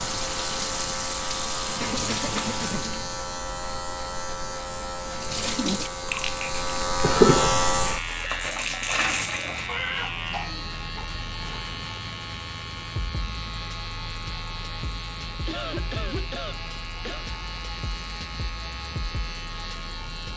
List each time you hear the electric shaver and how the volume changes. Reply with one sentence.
You can hear the electric shaver from 0.0 to 20.3 s, getting louder then quieter.